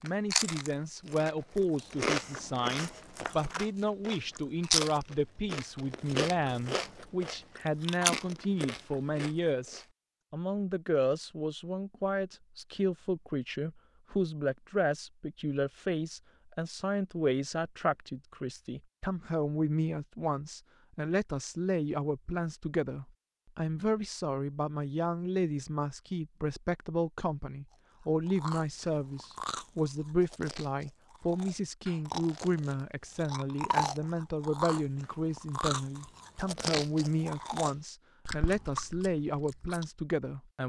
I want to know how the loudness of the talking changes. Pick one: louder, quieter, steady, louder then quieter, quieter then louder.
steady.